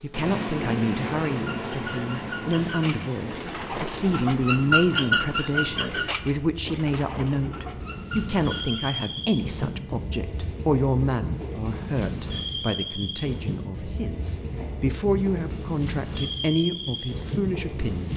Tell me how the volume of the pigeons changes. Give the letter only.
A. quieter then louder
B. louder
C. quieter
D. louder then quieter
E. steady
D.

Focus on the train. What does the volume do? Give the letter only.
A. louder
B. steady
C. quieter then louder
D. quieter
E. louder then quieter
C.